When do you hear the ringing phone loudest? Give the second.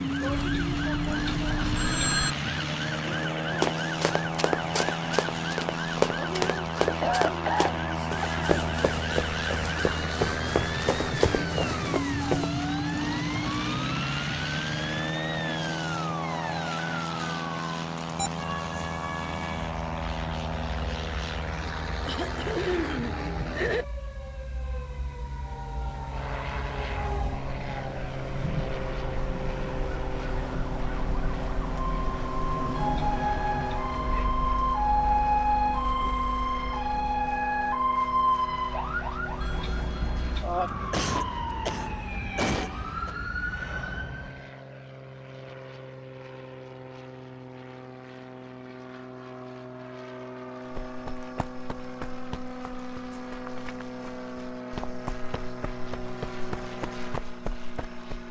2 s.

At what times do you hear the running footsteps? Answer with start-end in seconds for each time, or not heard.
3.5-12.5, 50.7-58.2.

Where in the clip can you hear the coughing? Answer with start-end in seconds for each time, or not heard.
7.0-8.4, 22.1-23.9, 40.9-43.1.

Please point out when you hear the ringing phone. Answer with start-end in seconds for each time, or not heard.
0.3-2.4, 32.8-33.8, 39.4-40.5.